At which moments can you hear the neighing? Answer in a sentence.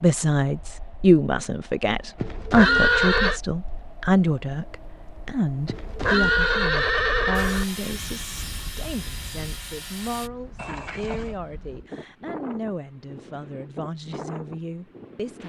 You can hear the neighing from 2.1 to 3.4 s, from 5.7 to 7.7 s and from 10.6 to 11.3 s.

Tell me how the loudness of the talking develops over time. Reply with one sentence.
The volume of the talking goes down.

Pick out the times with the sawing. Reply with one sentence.
The sawing can be heard from 7.3 to 10.3 s.